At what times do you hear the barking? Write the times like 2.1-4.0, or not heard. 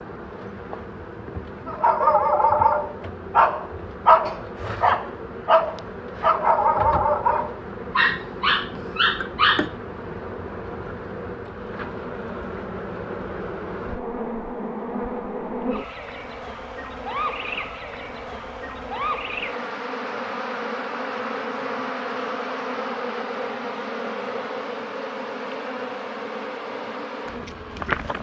1.6-9.8.